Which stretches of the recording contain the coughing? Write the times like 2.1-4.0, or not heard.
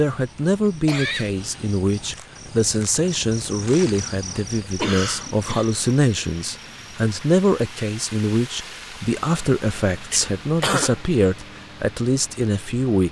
0.8-1.8, 4.8-5.7, 10.1-11.0.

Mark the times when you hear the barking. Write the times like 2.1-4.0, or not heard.
not heard.